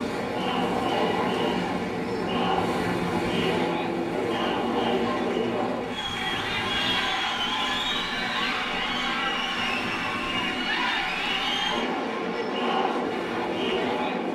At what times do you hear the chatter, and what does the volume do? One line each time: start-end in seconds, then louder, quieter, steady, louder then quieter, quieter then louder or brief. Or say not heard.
0.0-14.3 steady.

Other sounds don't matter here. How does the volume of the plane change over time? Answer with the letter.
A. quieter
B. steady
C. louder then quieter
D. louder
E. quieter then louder
B.